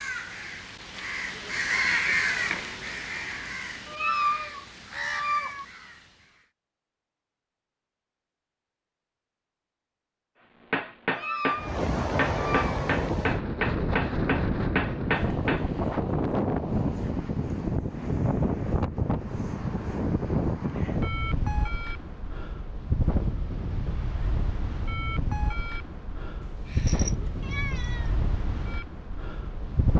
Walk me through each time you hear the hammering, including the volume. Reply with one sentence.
The hammering can be heard from 10.7 to 15.7 s, at a steady volume.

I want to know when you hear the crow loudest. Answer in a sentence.
The volume of the crow peaks at 2 seconds.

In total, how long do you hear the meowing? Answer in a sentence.
The meowing can be heard for 5 seconds in total.